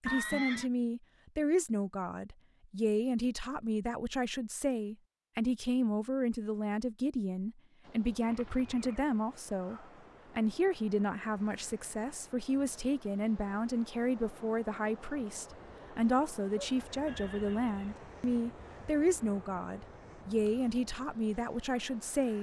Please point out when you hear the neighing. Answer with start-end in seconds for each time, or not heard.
0.1-0.7, 8.2-9.1, 17.1-17.9.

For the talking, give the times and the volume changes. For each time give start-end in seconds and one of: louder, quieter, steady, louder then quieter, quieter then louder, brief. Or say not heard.
0.0-22.3 steady.